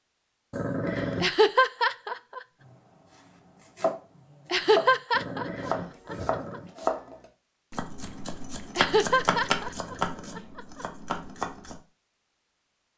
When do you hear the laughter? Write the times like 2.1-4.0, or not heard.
1.2-2.4, 4.5-6.6, 8.8-10.8.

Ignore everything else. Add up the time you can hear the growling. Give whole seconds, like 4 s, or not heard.
4 s.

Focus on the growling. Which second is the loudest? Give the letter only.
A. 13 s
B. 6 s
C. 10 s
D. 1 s
D.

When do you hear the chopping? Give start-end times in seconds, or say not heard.
2.6-11.8.